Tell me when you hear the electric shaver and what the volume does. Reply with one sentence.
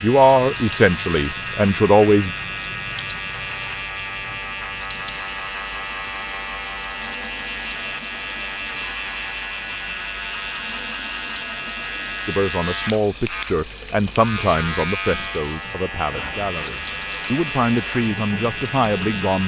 You can hear the electric shaver from 0.0 to 19.4 s, at a steady volume.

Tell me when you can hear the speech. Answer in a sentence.
You can hear the speech from 0.0 to 2.4 s and from 12.2 to 19.4 s.